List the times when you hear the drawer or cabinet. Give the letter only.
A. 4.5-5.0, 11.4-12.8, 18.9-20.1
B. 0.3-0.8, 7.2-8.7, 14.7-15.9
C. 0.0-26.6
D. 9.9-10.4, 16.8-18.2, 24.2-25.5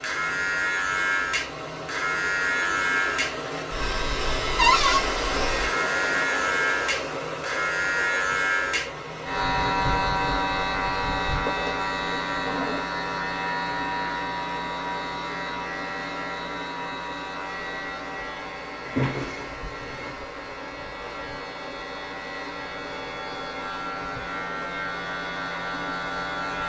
A.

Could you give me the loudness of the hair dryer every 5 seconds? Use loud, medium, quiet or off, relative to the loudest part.
loud, loud, medium, medium, medium, medium.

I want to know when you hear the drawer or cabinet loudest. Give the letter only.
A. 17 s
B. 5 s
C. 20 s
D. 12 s
B.